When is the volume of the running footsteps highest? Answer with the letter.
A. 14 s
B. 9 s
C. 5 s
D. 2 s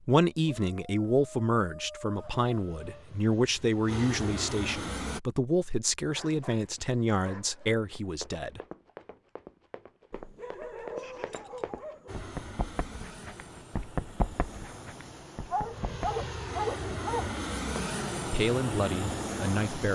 A.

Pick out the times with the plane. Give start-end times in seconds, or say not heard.
2.1-5.2, 12.1-19.8.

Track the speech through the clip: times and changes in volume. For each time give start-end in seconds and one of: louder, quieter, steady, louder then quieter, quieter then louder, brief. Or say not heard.
0.1-8.6 steady
18.2-19.8 brief.